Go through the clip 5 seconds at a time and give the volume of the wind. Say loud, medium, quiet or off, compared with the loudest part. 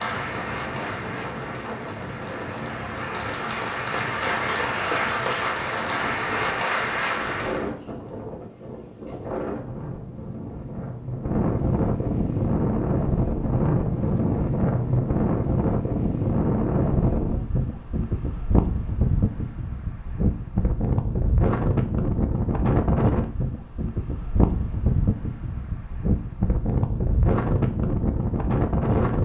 medium, medium, loud, loud, loud, loud.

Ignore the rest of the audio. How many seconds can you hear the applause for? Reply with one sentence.
You can hear the applause for 8 seconds altogether.